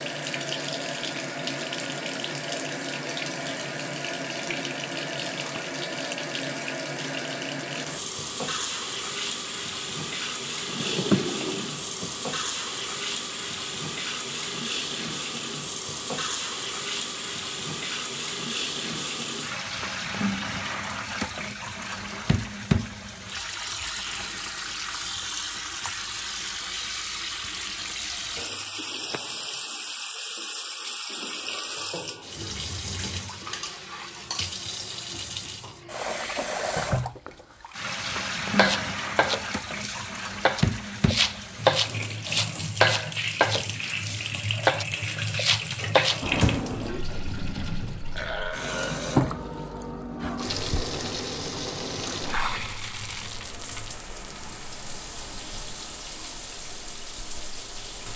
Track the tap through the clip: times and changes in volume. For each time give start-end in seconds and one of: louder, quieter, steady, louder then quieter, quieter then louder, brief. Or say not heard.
0.0-58.1 steady.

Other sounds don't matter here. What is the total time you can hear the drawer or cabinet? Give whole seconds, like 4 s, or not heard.
2 s.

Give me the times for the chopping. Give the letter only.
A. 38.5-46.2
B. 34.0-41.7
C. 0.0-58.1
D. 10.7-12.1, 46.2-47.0
A.